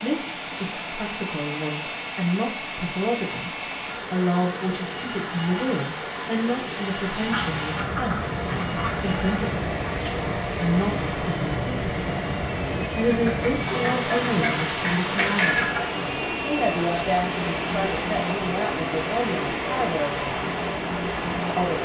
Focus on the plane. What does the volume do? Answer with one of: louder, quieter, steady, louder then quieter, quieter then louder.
steady.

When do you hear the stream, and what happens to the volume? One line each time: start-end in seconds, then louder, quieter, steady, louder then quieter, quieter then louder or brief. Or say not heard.
0.0-21.8 louder.